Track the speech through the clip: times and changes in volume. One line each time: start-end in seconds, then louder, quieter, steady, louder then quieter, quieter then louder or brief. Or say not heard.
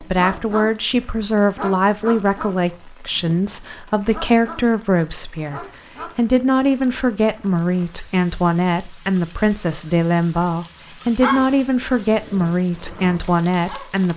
0.0-14.1 steady.